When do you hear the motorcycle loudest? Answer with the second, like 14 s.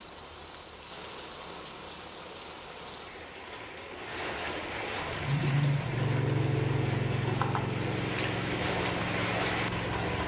6 s.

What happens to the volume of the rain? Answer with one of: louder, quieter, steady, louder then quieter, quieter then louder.
louder.